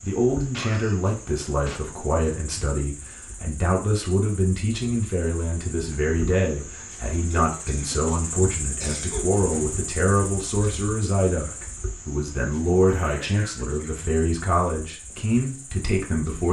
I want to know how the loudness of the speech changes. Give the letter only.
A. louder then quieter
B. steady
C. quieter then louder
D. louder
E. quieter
B.